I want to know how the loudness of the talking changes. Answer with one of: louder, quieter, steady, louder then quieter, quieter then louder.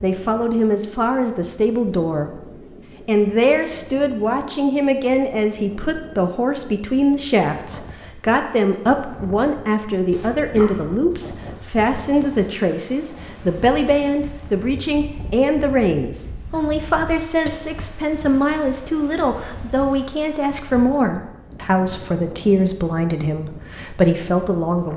steady.